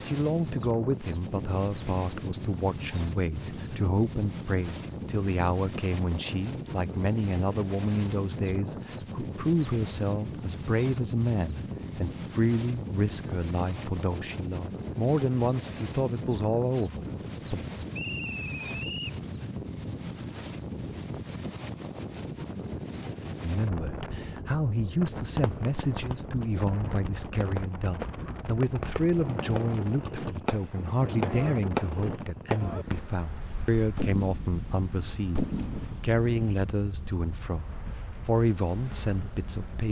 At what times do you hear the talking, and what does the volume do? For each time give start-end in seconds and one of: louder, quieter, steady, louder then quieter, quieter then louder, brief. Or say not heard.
0.1-17.6 steady
23.4-39.8 steady.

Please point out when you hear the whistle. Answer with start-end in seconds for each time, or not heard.
17.9-19.2.